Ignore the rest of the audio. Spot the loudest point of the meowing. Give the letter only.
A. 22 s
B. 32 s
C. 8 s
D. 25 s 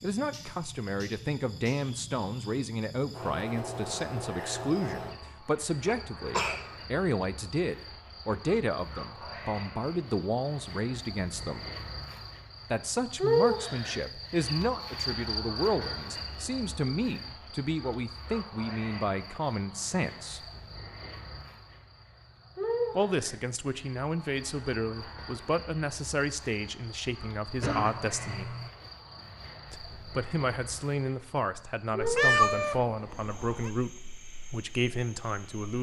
B.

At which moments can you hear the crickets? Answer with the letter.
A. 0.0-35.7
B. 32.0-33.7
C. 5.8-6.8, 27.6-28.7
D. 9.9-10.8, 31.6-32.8
A.